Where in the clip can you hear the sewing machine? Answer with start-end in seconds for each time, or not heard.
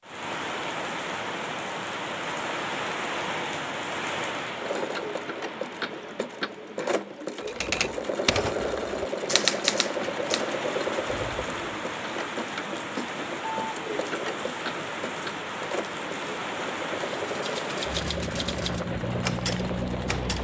4.5-20.2.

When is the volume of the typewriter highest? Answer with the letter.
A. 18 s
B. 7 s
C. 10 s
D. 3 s
C.